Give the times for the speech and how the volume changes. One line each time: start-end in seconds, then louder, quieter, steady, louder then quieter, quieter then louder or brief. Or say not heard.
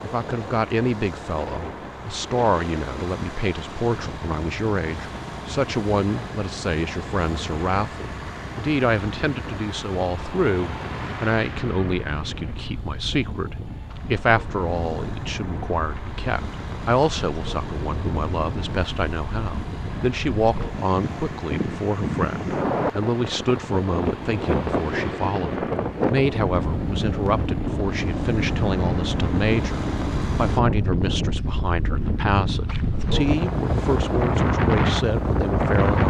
0.0-36.0 steady.